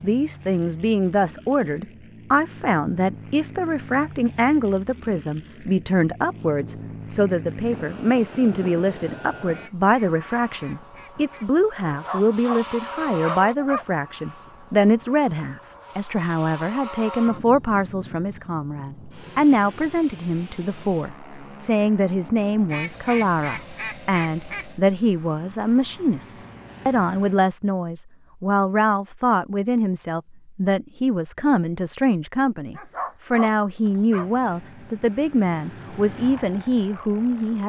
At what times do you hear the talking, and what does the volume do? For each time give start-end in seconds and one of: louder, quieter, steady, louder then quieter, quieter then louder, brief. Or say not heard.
0.0-37.6 steady.